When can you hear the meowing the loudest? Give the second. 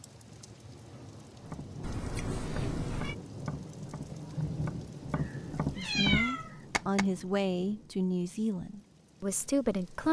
6 s.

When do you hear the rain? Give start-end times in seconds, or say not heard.
0.0-10.0.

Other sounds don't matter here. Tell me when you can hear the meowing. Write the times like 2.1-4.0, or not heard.
1.8-3.1, 5.2-6.5.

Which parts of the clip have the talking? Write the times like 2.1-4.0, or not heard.
5.8-10.0.